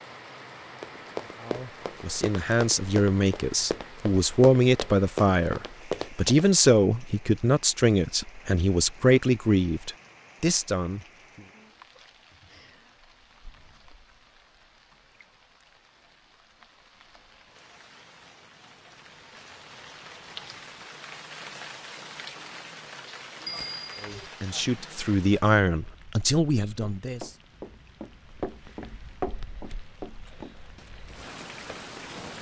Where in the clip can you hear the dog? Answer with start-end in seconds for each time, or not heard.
not heard.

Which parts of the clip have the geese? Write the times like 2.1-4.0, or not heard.
not heard.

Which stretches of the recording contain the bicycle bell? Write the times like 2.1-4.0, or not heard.
23.4-24.3.